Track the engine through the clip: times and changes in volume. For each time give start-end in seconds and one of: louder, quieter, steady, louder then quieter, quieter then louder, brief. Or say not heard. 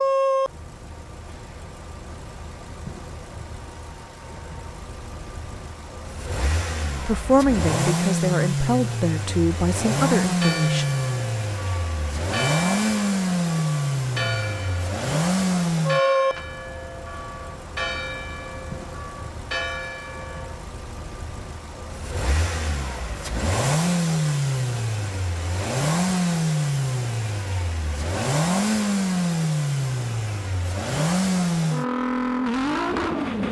0.0-33.4 louder.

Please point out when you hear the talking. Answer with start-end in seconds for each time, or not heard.
7.0-10.8.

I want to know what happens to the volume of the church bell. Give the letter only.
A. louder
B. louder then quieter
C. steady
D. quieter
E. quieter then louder
C.